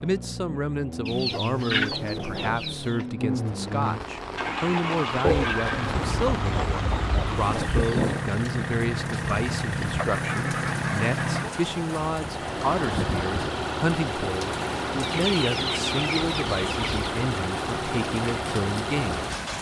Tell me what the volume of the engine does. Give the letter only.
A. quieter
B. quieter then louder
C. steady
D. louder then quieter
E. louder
C.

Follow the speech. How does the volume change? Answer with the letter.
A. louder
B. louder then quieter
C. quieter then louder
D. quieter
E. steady
E.